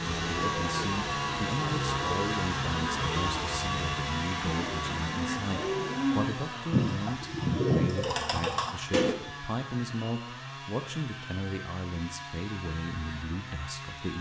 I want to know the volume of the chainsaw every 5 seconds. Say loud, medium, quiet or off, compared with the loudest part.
loud, medium, medium.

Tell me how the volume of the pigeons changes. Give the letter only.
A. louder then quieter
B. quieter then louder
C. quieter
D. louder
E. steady
D.